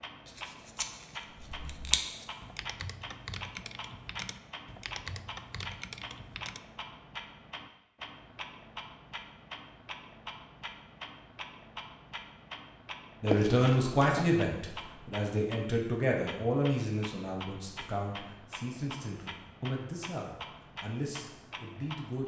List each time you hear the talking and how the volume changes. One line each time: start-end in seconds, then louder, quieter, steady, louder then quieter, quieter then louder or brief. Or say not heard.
13.2-22.2 quieter.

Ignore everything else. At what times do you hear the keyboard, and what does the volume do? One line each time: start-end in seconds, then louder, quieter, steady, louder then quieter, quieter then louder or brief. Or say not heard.
1.3-6.7 louder.